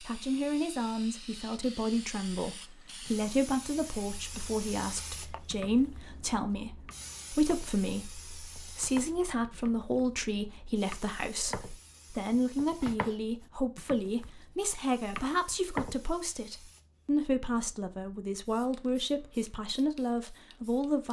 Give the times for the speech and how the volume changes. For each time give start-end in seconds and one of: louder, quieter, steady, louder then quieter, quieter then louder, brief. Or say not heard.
0.0-21.0 steady.